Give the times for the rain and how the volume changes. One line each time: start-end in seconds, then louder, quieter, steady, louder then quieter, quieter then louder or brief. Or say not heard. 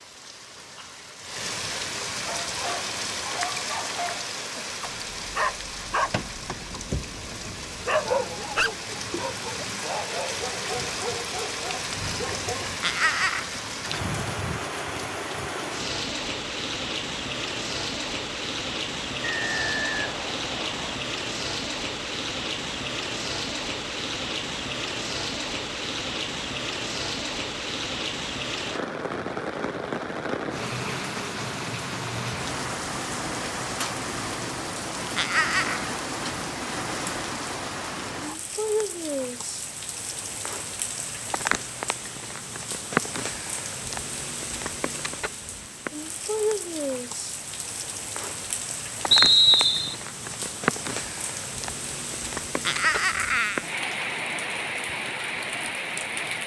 0.0-56.4 steady.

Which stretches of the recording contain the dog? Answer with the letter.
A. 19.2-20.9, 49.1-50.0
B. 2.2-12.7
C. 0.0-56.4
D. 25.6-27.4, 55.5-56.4
B.